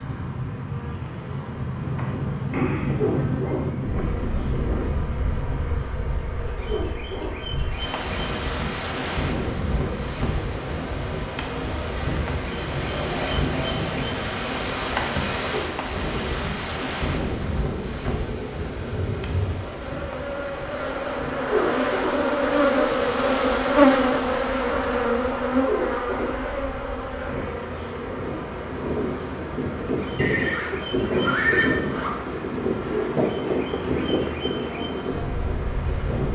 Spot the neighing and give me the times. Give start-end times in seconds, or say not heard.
30.1-32.1.